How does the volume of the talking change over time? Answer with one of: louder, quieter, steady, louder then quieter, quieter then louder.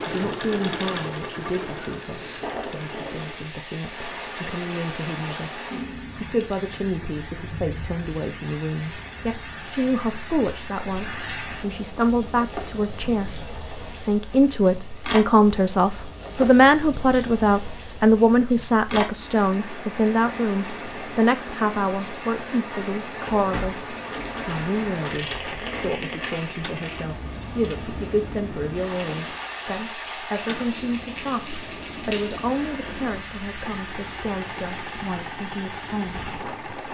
louder then quieter.